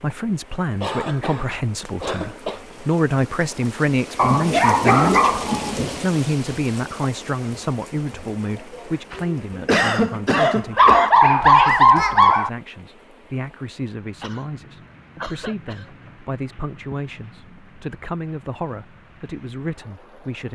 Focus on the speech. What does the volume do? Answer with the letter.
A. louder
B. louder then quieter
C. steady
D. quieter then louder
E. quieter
E.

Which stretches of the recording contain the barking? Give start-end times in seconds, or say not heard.
4.2-6.0, 10.8-12.5.